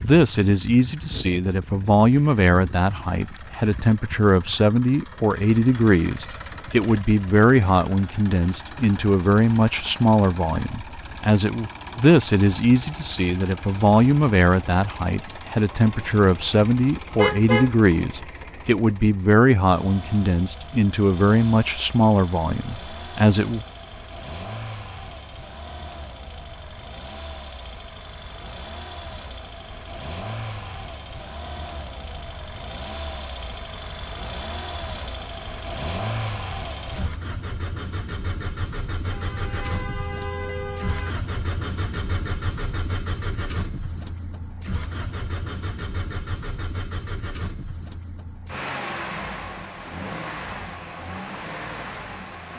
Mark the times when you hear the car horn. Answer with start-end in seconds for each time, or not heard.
17.1-17.8, 39.1-41.1.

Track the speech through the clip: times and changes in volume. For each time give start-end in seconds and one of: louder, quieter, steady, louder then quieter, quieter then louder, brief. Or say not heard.
0.0-23.6 steady.